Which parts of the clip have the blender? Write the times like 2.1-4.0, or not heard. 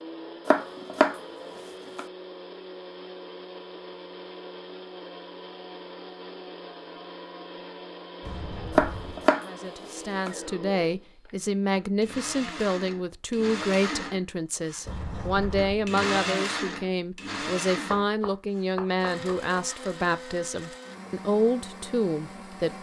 0.0-22.7.